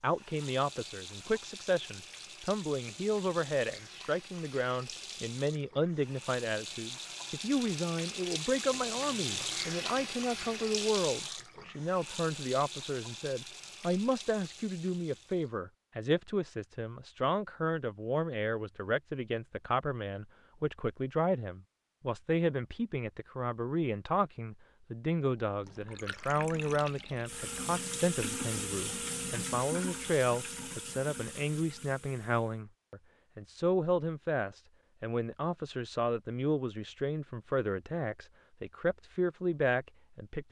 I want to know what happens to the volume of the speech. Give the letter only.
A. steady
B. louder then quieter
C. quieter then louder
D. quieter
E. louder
A.